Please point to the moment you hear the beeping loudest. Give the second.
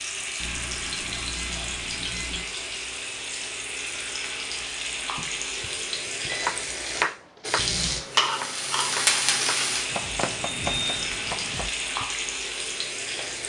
11 s.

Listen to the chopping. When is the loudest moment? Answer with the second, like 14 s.
7 s.